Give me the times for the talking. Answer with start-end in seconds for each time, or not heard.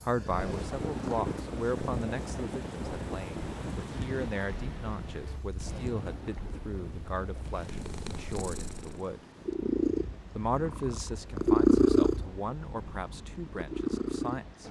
0.0-9.2, 10.3-14.6.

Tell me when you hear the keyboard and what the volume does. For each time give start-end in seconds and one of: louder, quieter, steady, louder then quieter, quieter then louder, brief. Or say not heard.
not heard.